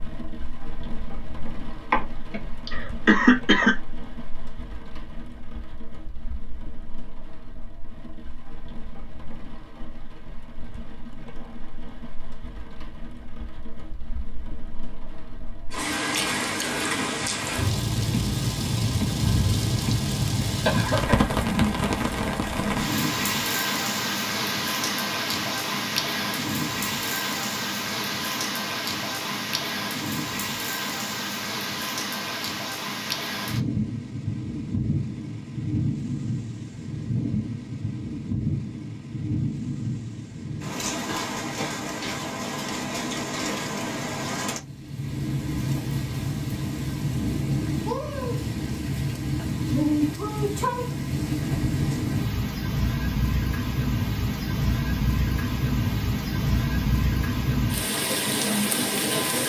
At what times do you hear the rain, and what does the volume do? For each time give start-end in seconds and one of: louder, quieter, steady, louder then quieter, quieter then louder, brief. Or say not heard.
0.0-59.4 louder.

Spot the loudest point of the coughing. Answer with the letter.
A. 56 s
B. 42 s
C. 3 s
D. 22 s
C.